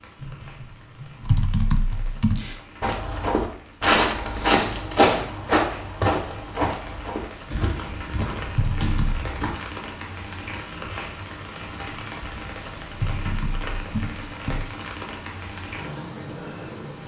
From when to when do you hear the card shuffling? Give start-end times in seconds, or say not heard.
not heard.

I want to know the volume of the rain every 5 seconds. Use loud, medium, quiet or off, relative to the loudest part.
quiet, loud, loud, loud.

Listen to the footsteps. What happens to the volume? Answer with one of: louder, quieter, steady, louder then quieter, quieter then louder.
quieter.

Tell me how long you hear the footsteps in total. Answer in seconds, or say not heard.
7 s.